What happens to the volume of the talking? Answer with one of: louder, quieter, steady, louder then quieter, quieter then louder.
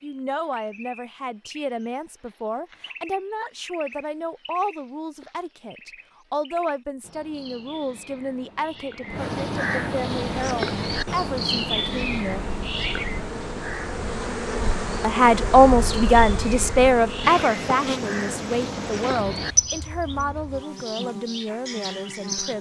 louder then quieter.